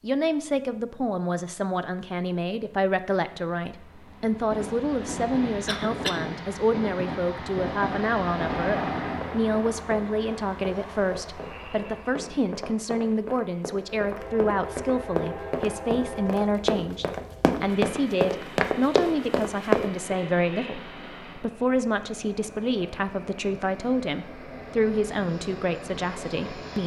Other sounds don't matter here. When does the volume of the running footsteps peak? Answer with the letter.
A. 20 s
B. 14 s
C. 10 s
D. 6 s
A.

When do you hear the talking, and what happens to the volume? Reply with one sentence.
The talking can be heard from 0.0 to 26.8 s, at a steady volume.